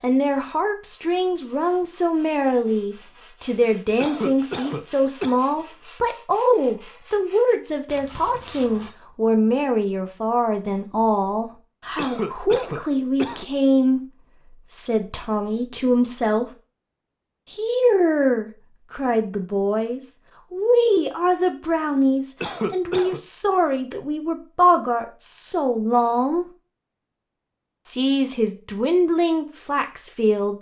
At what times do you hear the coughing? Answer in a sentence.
You can hear the coughing from 4.0 to 5.4 s, from 11.9 to 13.4 s and from 22.4 to 23.2 s.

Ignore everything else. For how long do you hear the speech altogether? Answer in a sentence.
The speech can be heard for 28 seconds in total.